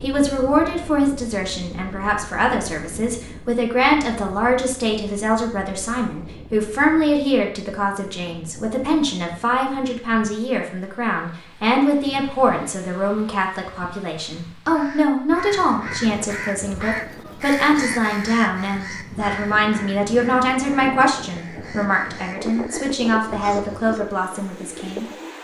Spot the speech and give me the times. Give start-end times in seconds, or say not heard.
0.0-25.3.